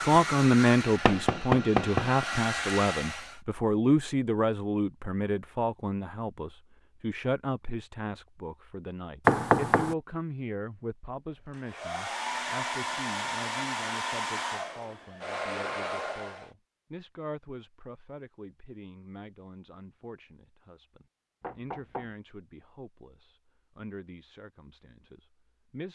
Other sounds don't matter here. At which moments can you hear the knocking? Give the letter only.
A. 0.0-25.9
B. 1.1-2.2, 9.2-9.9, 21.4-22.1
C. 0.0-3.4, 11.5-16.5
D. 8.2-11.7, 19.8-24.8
B.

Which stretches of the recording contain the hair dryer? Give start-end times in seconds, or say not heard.
0.0-3.4, 11.5-16.5.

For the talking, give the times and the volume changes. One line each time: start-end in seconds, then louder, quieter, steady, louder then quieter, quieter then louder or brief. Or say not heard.
0.0-25.9 quieter.